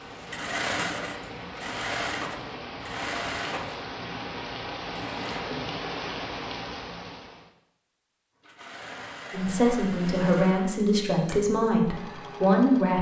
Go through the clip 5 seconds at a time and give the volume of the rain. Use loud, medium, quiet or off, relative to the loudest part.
loud, loud, off.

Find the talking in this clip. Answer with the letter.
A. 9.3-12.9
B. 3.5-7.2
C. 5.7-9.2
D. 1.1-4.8
A.